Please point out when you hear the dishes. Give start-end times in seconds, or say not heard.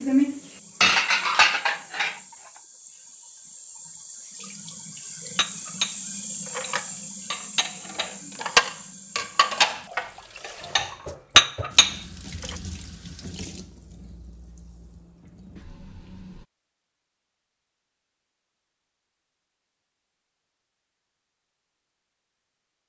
0.0-2.1, 5.3-12.6.